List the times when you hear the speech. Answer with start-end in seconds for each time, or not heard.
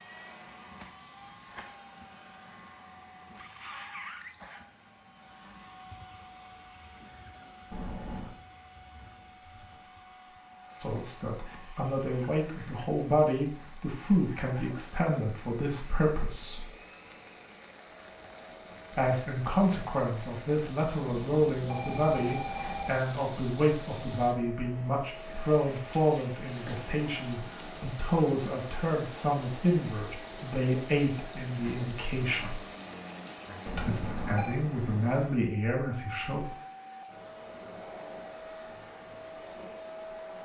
10.8-16.7, 18.9-32.5, 33.8-36.5.